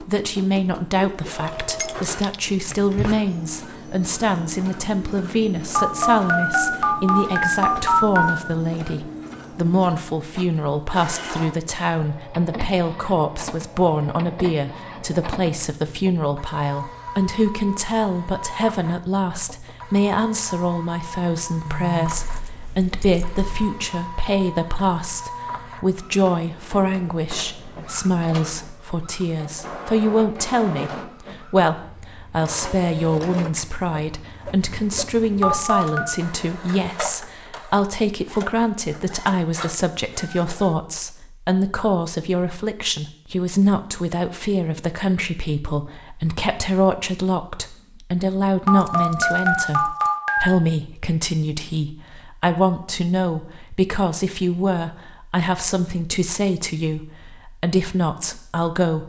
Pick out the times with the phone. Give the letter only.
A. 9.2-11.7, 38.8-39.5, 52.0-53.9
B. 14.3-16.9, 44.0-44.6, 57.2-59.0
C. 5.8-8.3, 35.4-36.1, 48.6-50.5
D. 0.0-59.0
C.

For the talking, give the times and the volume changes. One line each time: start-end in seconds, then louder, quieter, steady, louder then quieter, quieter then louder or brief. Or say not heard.
0.0-59.0 steady.